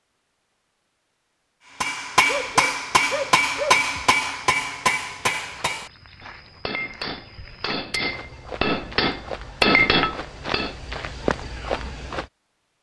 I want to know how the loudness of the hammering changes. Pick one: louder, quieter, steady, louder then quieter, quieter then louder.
quieter then louder.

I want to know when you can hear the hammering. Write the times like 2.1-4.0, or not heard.
1.8-10.8.